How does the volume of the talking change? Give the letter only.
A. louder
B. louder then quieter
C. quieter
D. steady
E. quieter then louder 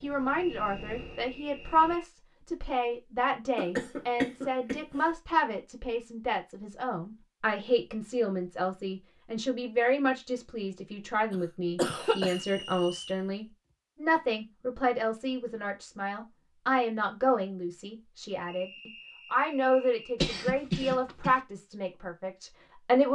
D.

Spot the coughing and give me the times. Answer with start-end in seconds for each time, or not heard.
3.5-5.0, 11.3-12.4, 20.2-21.4.